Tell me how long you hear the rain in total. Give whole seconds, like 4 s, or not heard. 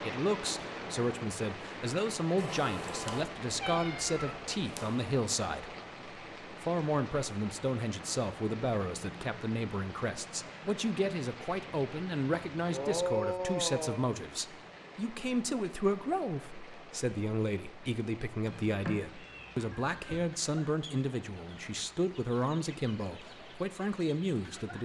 25 s.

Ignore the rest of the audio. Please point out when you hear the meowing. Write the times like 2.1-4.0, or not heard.
2.4-5.0, 18.4-20.2.